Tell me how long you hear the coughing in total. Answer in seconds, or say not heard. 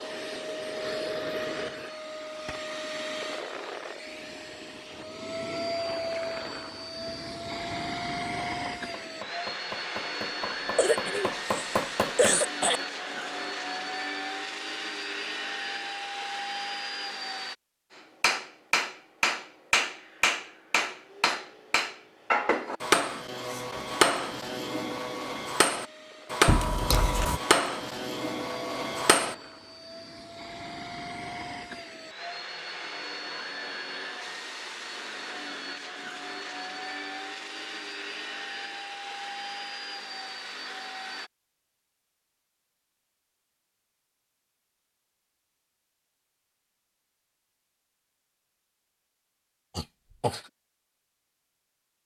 4 s.